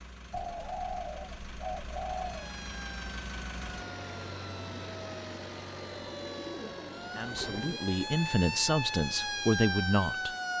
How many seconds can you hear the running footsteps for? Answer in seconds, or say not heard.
not heard.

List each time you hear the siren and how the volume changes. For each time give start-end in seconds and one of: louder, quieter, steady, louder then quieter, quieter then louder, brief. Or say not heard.
2.2-10.5 louder.